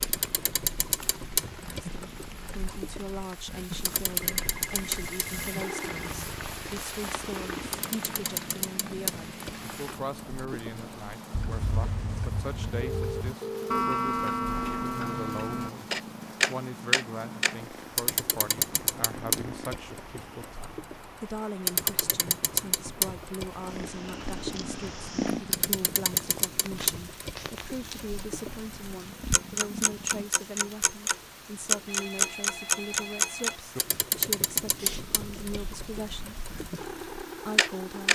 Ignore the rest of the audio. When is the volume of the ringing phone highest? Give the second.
13 s.